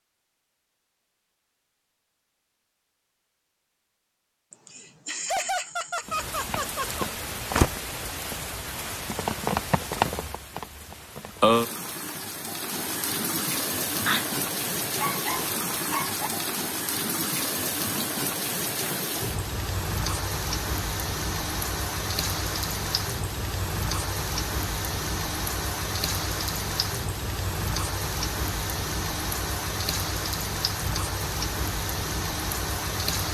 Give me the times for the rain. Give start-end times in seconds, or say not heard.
6.0-33.2.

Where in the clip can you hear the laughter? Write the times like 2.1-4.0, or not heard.
4.5-7.0.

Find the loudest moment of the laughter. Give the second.
5 s.